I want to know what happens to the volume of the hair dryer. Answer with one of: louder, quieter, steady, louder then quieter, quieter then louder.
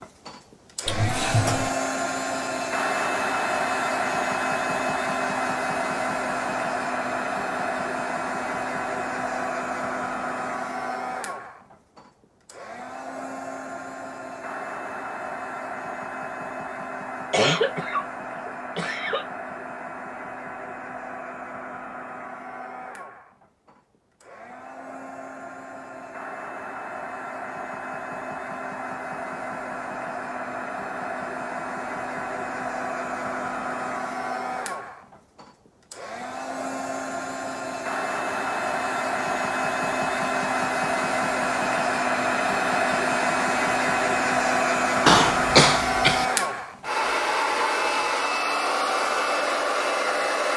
quieter then louder.